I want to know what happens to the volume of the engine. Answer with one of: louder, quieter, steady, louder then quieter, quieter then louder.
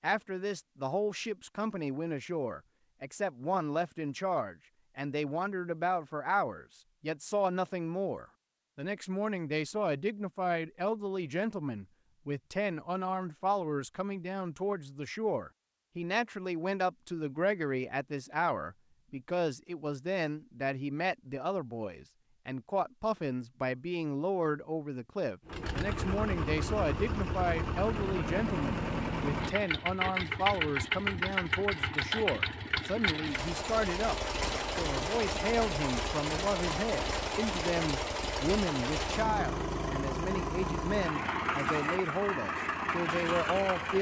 steady.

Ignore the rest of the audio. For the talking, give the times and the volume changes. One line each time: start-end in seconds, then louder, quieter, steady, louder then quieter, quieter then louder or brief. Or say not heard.
0.0-34.1 steady
34.8-43.9 steady.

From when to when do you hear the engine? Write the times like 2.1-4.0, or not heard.
25.4-43.9.